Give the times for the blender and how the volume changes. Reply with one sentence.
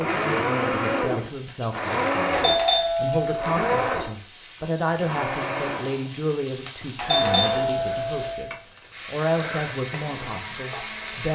The blender can be heard from 0.0 to 11.3 s, getting quieter.